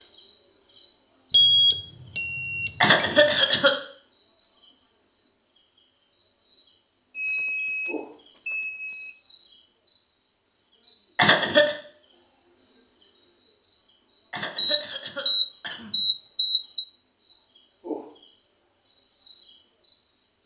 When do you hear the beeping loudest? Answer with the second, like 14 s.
2 s.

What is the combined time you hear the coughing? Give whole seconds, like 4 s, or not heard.
3 s.